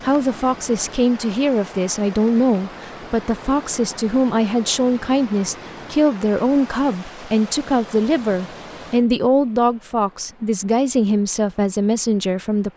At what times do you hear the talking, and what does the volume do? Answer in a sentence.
The talking can be heard from 0.0 to 12.7 s, at a steady volume.